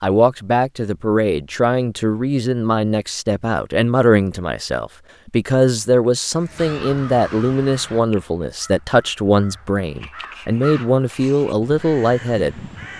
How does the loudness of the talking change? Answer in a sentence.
The loudness of the talking stays about the same.